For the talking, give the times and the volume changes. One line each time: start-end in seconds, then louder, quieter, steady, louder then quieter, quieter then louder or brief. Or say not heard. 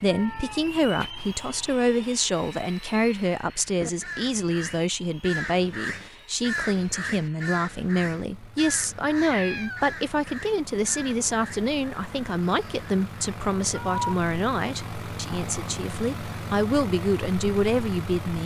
0.0-18.4 steady.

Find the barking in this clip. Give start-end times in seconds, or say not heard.
not heard.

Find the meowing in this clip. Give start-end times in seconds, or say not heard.
0.1-1.1, 9.1-9.9, 13.7-14.2.